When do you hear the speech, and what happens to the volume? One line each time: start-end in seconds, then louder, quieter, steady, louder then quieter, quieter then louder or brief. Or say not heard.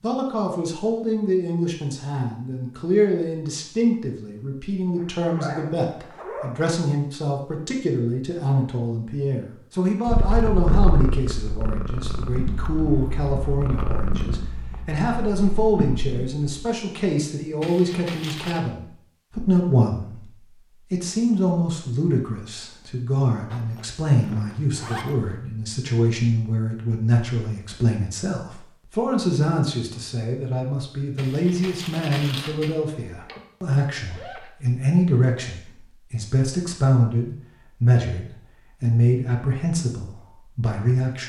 0.0-41.2 steady.